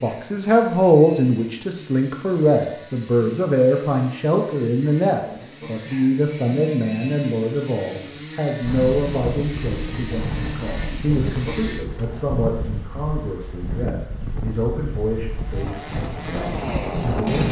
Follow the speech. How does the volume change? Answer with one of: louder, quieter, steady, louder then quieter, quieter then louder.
quieter.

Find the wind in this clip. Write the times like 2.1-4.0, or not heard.
8.6-17.4.